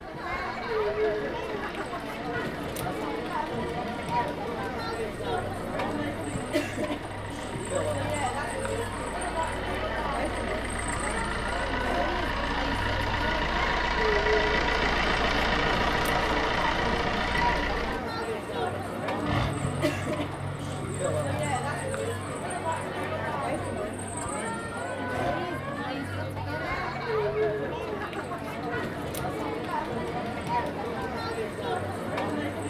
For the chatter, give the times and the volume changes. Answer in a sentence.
You can hear the chatter from 0.0 to 32.6 s, at a steady volume.